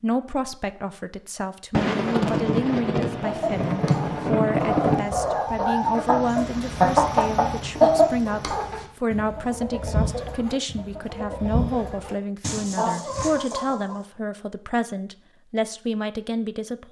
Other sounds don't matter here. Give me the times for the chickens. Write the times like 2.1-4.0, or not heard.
3.2-13.9.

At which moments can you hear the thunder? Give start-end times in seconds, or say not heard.
1.7-5.0.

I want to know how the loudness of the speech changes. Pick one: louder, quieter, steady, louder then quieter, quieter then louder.
steady.